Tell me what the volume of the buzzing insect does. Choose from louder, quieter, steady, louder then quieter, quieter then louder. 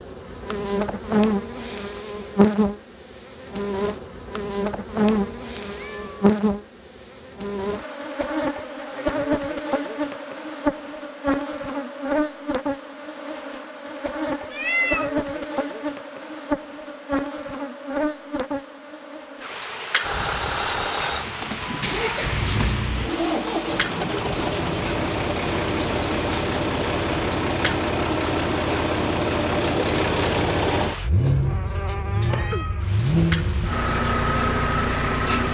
quieter.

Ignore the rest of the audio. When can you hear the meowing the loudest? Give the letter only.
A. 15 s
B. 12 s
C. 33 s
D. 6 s
A.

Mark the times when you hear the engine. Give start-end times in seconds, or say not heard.
20.0-35.4.